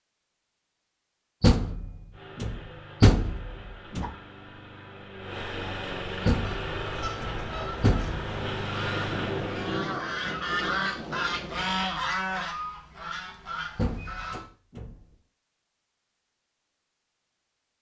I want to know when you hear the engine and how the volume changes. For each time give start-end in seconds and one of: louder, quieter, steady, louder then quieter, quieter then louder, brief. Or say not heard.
2.1-9.8 louder.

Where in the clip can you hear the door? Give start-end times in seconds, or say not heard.
1.4-4.1, 6.2-8.2, 13.8-14.9.